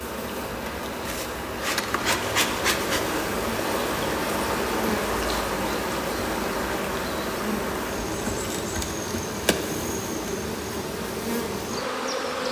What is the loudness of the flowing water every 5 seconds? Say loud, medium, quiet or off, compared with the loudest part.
loud, loud, medium.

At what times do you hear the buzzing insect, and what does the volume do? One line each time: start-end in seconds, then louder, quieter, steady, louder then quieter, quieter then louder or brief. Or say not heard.
0.0-12.4 steady.